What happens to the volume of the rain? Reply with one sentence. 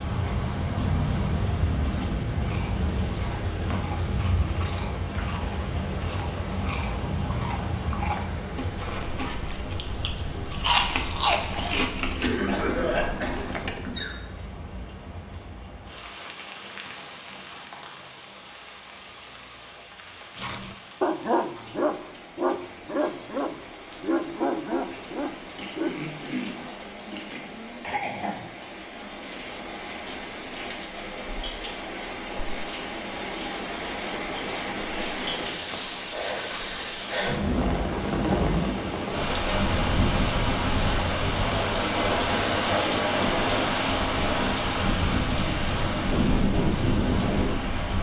The loudness of the rain goes down, then up.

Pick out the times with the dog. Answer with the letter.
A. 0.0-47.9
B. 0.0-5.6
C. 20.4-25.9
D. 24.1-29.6
C.